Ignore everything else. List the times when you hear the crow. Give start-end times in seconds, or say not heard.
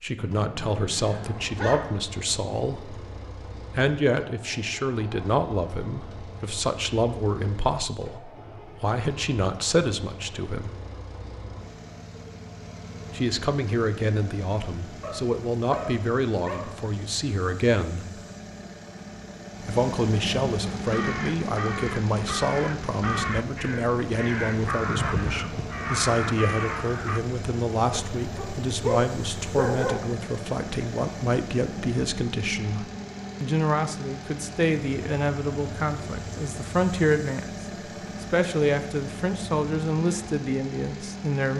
20.8-27.2.